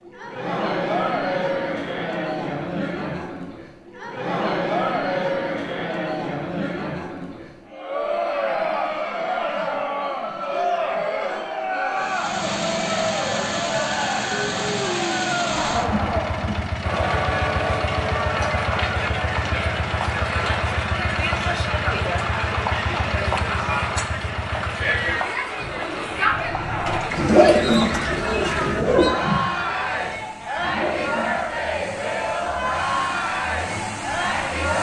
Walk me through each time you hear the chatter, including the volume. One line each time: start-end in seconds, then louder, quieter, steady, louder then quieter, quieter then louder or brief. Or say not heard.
0.0-34.7 steady.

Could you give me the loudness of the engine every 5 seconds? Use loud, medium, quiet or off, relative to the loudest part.
off, off, loud, loud, loud, medium, medium.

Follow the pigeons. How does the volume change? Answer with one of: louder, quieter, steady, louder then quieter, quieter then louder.
quieter then louder.